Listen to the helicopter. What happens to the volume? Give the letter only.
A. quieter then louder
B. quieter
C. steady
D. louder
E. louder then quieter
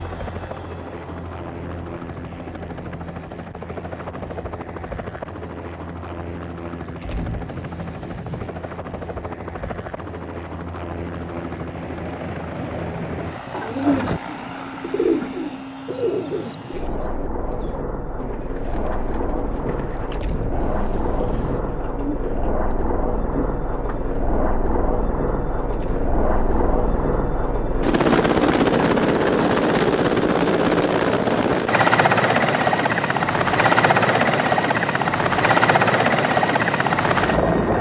D.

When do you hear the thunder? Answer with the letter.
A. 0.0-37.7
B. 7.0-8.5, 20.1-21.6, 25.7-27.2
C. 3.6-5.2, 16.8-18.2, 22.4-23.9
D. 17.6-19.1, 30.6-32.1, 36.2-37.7
B.